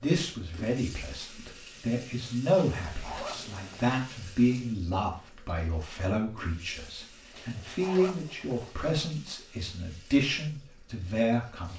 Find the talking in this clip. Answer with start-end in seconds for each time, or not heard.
0.0-11.7.